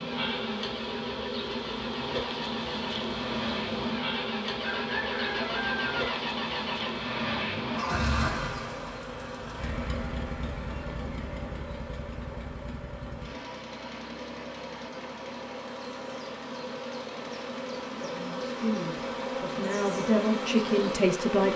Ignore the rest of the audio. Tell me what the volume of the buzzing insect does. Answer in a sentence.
The volume of the buzzing insect goes down, then up.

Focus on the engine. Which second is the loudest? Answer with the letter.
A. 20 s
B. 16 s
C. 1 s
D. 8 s
D.